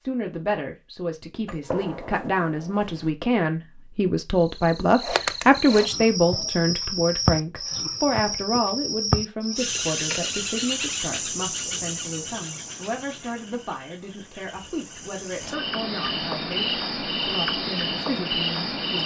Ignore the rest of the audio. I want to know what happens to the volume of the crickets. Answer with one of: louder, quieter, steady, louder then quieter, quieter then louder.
quieter then louder.